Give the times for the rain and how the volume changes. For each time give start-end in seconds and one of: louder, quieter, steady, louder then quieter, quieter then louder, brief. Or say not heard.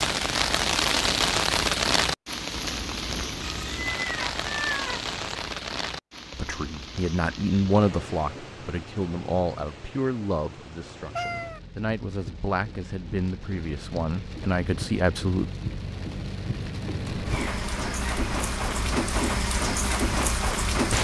0.0-20.9 quieter then louder.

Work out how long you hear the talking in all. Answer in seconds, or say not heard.
9 s.